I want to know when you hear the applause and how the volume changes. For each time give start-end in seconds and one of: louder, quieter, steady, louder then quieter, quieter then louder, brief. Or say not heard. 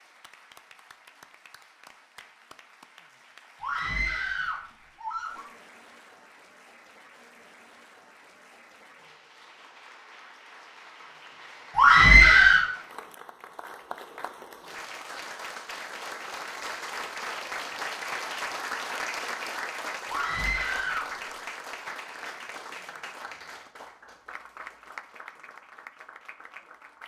0.0-27.0 louder then quieter.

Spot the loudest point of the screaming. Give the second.
12 s.